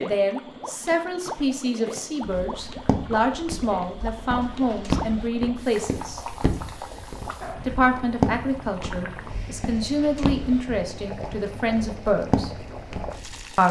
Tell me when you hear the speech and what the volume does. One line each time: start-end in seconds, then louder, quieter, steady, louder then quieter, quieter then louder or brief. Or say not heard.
0.0-6.2 steady
7.7-12.5 quieter then louder.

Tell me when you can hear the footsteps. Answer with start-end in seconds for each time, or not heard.
2.2-13.4.